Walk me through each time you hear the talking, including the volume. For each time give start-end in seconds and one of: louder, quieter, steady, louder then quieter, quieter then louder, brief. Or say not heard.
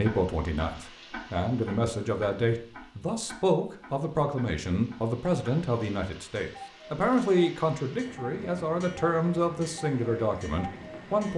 0.0-11.3 steady.